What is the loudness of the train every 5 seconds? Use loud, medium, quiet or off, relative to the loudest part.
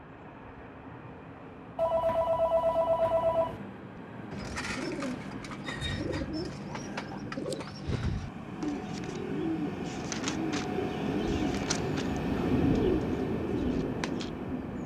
quiet, medium, loud.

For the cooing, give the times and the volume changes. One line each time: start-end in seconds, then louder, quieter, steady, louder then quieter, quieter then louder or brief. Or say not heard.
4.0-14.3 steady.